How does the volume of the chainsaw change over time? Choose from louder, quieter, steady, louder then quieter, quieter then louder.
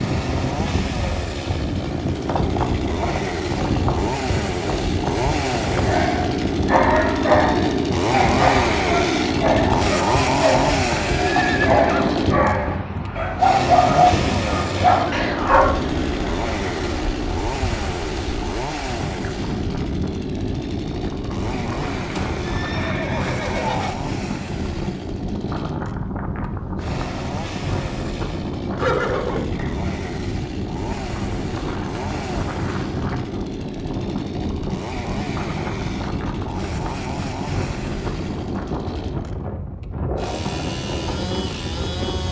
quieter.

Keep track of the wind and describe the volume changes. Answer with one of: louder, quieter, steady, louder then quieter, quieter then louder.
steady.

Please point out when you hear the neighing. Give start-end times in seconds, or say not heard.
11.1-12.2, 21.9-23.9, 28.8-29.8.